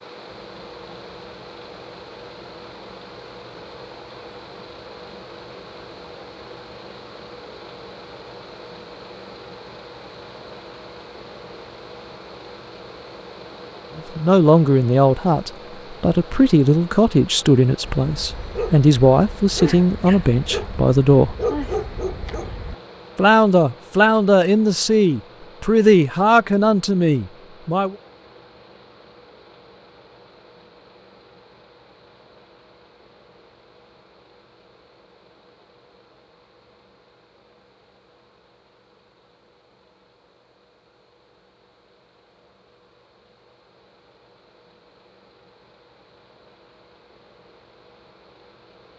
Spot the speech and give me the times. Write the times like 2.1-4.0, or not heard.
13.9-21.4, 23.1-27.9.